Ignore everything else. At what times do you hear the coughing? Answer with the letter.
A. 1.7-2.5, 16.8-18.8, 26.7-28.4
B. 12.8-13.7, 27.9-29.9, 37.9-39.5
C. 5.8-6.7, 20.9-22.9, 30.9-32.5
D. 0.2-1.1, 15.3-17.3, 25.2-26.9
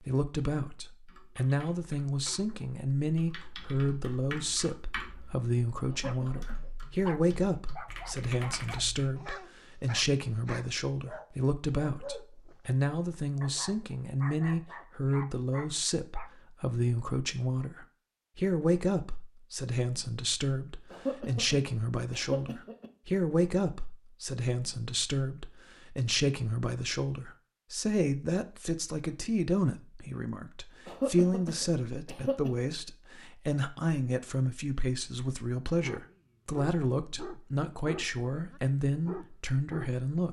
C.